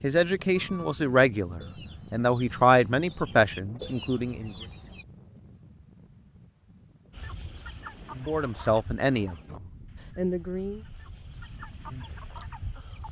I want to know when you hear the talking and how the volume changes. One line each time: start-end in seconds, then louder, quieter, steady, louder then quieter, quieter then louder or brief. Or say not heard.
0.0-4.5 louder then quieter
8.2-10.8 brief.